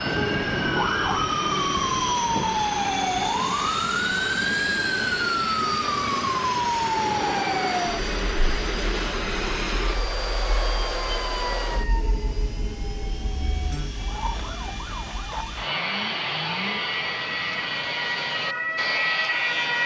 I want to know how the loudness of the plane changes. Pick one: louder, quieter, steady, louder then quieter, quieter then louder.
quieter then louder.